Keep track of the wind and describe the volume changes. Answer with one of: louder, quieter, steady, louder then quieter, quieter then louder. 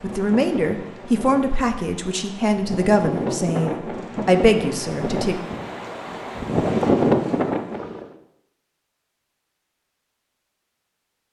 louder.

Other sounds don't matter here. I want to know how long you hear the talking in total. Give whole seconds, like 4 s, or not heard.
5 s.